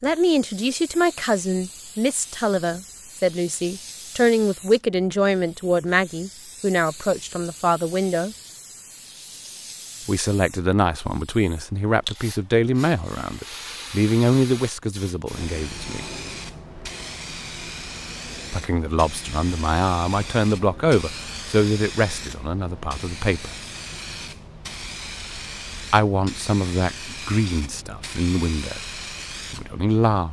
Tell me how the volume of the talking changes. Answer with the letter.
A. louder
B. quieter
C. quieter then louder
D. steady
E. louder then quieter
D.